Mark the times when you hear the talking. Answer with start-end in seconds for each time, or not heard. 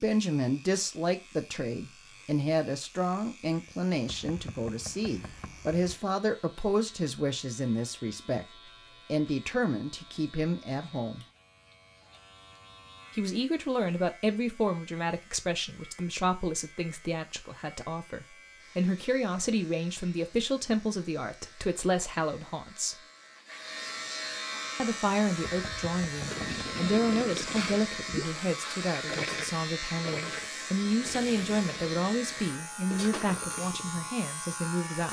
0.0-8.4, 9.1-11.2, 13.2-22.9, 24.8-35.0.